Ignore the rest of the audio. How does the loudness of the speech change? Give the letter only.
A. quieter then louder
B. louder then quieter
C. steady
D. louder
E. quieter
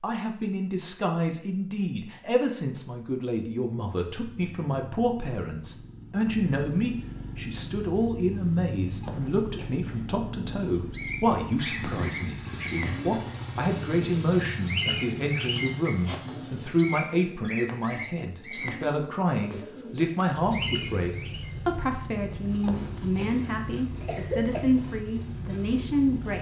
C.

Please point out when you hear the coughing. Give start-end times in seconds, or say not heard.
9.0-10.1, 22.6-24.6.